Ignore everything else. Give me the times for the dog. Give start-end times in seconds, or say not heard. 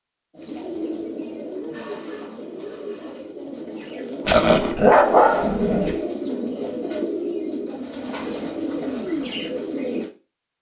4.2-6.0.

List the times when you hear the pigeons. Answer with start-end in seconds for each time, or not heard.
0.3-10.1.